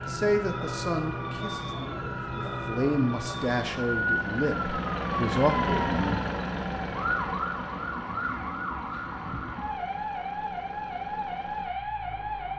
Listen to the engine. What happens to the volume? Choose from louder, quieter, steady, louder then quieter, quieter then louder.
louder then quieter.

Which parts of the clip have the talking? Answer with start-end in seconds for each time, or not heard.
0.1-6.2.